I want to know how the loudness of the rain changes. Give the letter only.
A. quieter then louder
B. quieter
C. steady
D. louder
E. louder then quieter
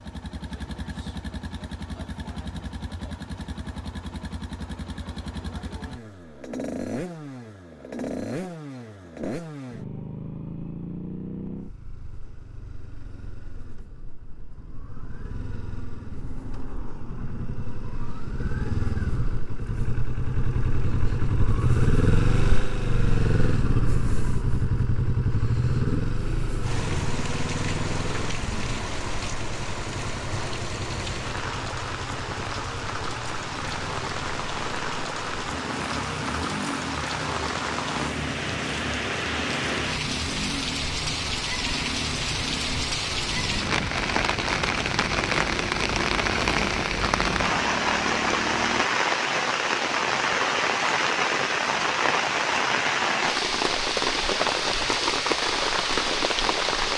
D.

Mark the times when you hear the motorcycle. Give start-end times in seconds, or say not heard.
0.0-48.9.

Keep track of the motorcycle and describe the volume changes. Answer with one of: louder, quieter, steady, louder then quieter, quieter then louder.
louder then quieter.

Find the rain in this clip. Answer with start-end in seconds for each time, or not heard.
26.6-56.9.